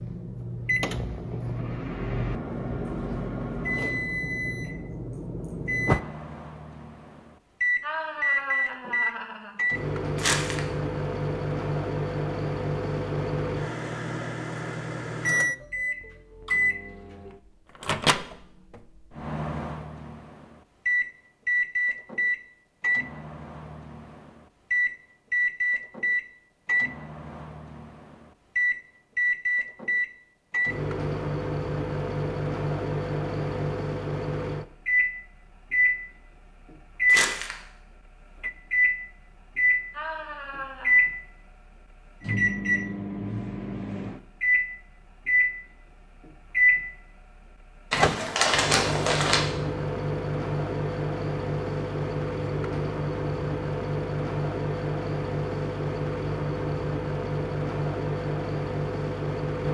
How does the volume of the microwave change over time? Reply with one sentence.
The volume of the microwave stays about the same.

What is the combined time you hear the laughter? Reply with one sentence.
You can hear the laughter for 3 seconds altogether.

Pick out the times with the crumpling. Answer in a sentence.
You can hear the crumpling from 10.2 to 10.6 s, from 37.0 to 37.5 s and from 47.9 to 49.4 s.